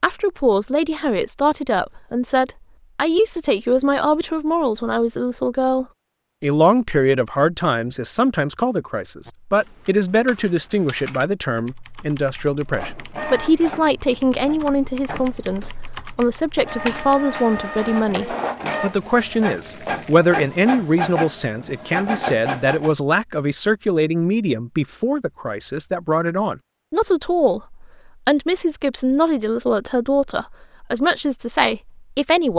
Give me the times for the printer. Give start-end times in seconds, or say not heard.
12.7-22.9.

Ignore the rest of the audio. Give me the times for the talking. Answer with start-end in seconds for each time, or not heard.
0.0-32.5.